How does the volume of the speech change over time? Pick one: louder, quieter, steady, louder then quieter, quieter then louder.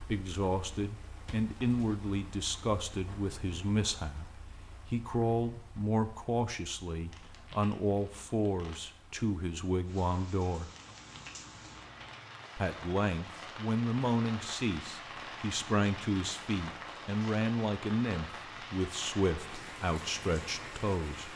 steady.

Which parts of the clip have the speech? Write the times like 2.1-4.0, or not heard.
0.0-10.7, 12.6-21.3.